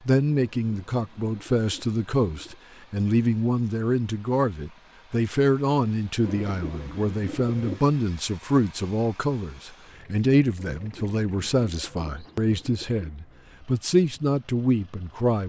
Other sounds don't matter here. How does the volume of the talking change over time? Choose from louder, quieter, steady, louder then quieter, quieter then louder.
steady.